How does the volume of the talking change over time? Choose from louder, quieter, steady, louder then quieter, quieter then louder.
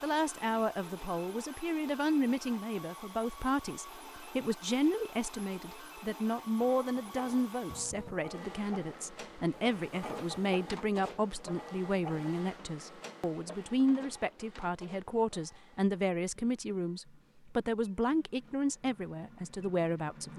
steady.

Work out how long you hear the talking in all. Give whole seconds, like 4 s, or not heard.
20 s.